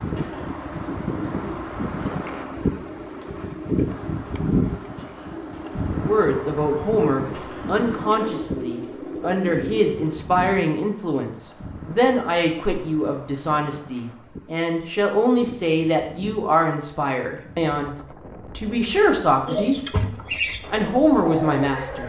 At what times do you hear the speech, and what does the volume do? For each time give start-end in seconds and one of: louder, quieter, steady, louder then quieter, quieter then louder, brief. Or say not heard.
6.0-19.9 steady
20.7-22.0 brief.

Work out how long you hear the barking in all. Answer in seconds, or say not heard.
not heard.